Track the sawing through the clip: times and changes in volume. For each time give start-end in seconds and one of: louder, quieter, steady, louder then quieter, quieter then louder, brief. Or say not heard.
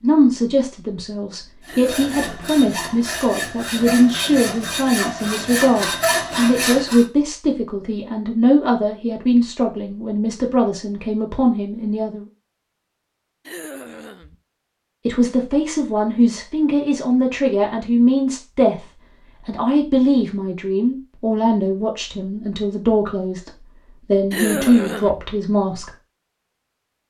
1.6-7.0 louder.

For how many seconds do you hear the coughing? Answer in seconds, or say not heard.
3 s.